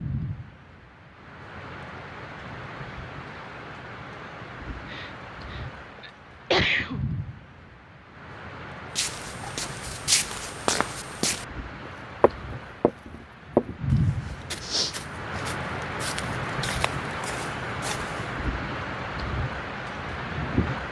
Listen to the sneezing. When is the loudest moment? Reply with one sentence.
The volume of the sneezing peaks at 7 seconds.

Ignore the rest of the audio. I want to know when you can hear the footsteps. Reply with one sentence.
You can hear the footsteps from 8.9 to 18.3 s.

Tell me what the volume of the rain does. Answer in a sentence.
The volume of the rain goes up.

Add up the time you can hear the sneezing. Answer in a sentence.
You can hear the sneezing for 2 seconds altogether.